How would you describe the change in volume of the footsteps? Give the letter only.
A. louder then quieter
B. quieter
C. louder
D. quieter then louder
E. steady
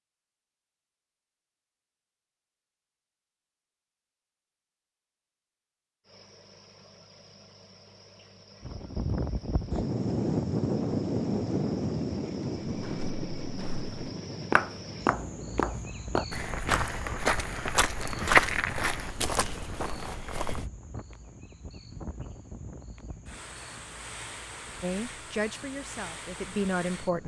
A.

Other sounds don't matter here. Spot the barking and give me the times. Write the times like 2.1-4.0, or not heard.
not heard.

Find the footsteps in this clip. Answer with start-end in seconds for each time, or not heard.
12.7-20.6.